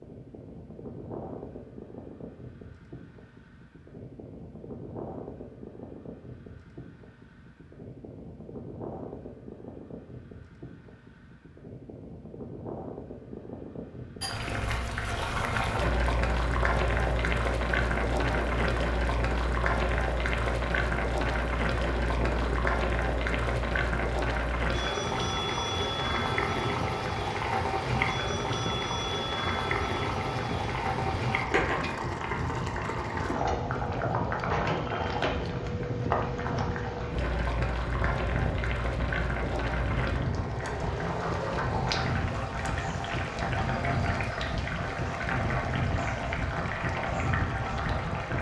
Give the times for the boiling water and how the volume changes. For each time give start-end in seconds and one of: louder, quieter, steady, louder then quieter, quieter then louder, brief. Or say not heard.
14.2-48.3 steady.